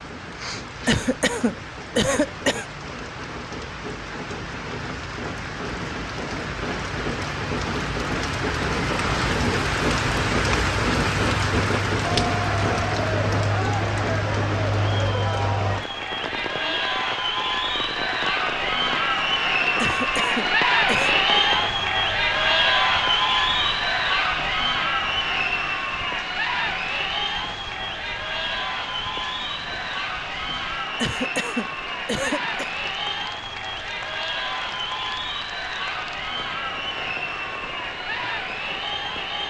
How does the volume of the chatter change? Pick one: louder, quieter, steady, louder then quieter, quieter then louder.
louder then quieter.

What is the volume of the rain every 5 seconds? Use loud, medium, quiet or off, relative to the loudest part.
medium, loud, loud, medium, medium, quiet, quiet, quiet.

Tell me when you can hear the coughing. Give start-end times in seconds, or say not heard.
0.8-2.6, 19.8-21.1, 31.0-32.6.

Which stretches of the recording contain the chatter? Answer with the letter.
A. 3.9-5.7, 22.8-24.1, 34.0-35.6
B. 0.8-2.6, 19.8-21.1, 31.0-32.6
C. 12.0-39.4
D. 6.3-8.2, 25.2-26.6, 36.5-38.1
C.